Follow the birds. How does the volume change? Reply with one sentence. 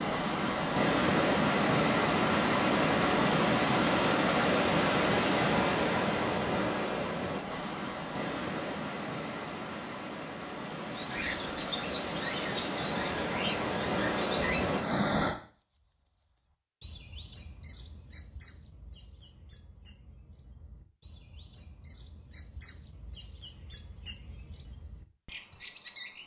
The loudness of the birds goes down, then up.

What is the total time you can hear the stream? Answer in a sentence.
You can hear the stream for 15 seconds altogether.